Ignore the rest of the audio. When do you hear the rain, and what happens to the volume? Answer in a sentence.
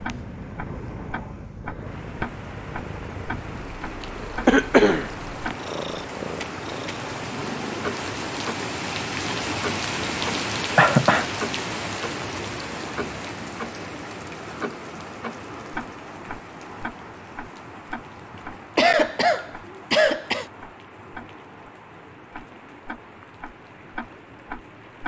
You can hear the rain from 0.0 to 25.0 s, getting louder then quieter.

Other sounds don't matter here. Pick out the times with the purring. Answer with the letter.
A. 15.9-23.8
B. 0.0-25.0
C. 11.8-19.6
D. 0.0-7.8
D.